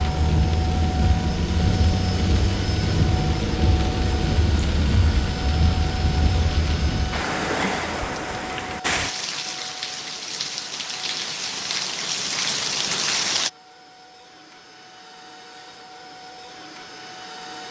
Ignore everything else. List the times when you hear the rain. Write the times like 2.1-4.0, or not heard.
0.0-13.5.